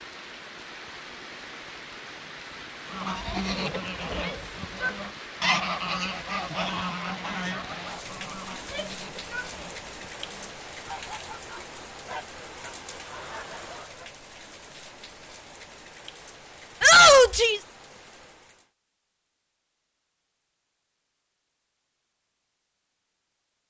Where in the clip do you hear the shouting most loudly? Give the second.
17 s.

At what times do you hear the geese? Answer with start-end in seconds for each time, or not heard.
2.9-14.2.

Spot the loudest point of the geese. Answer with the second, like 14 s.
6 s.